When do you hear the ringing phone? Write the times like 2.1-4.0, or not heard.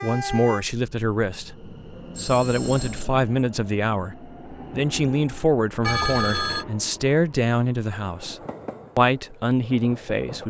2.1-3.0, 5.8-6.7.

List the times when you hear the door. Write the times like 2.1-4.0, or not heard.
not heard.